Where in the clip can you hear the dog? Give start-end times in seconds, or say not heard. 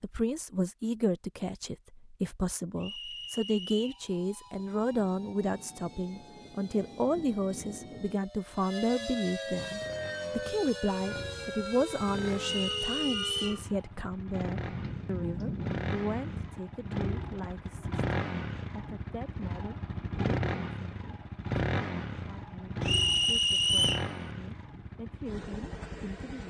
not heard.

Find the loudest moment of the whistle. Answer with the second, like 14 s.
24 s.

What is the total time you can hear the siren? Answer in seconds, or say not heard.
10 s.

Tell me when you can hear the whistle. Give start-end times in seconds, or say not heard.
2.8-4.0, 12.4-13.7, 22.8-24.1.